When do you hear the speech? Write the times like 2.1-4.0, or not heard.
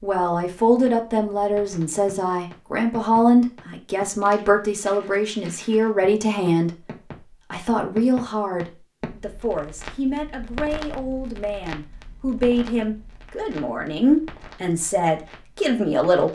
0.0-16.3.